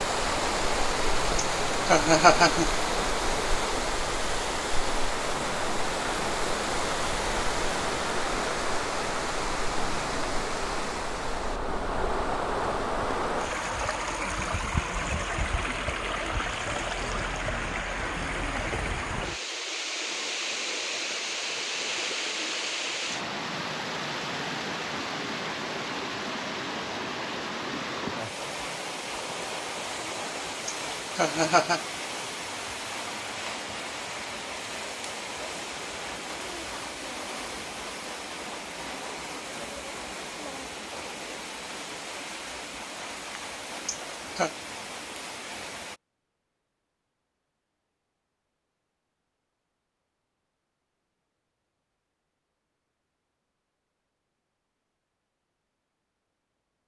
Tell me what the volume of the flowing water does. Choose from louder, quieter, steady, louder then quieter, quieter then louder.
quieter.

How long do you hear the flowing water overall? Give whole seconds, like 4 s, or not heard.
46 s.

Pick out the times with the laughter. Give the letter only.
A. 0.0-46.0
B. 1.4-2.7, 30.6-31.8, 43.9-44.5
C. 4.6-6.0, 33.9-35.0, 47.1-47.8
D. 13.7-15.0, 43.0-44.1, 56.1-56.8
B.